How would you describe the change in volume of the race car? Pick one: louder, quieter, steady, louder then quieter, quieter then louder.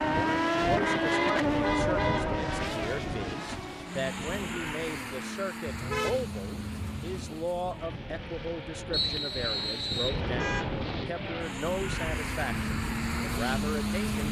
quieter then louder.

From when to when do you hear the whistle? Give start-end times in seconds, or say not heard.
8.9-10.2.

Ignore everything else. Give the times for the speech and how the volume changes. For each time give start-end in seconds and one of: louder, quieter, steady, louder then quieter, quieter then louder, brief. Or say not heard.
0.1-14.2 steady.